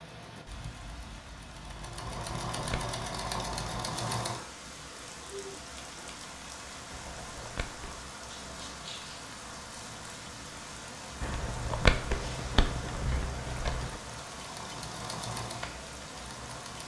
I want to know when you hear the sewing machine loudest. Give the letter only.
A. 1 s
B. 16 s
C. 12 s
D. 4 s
D.